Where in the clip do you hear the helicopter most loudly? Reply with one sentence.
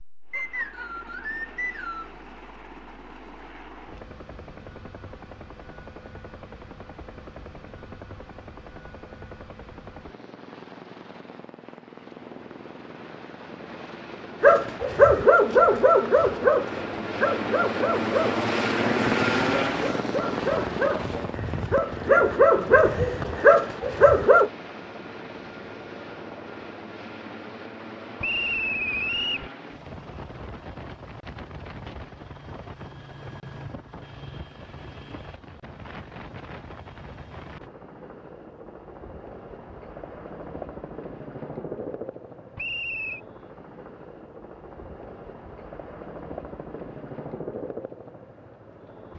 The volume of the helicopter peaks at 19 seconds.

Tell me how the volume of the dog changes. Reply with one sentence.
The loudness of the dog goes down, then up.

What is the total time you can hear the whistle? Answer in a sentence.
You can hear the whistle for 4 seconds altogether.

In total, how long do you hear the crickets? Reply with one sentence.
You can't hear the crickets here.